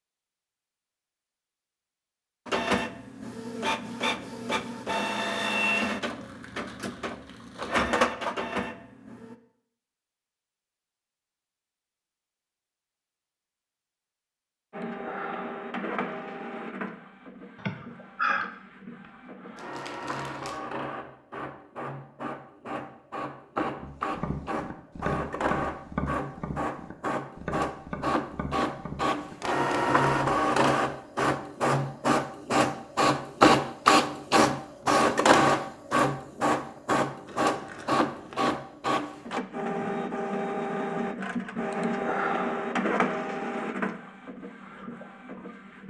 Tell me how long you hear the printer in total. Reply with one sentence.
The printer can be heard for 38 seconds in total.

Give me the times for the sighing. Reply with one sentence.
The sighing can be heard from 17.6 to 18.5 s.